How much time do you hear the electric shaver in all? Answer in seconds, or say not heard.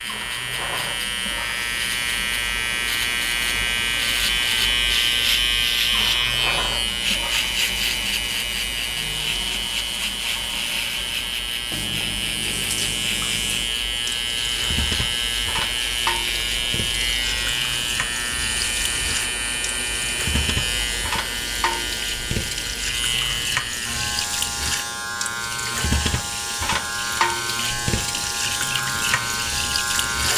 30 s.